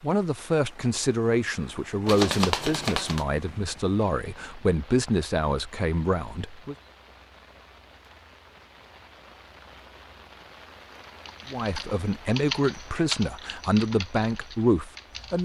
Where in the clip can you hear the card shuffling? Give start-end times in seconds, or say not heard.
2.0-3.2.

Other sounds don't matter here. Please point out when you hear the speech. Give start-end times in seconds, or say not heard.
0.0-6.8, 11.5-15.4.